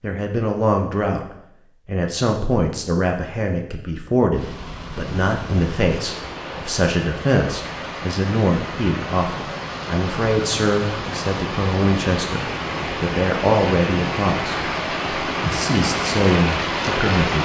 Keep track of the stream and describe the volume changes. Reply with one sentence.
The loudness of the stream goes up.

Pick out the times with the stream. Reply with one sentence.
The stream can be heard from 4.3 to 17.4 s.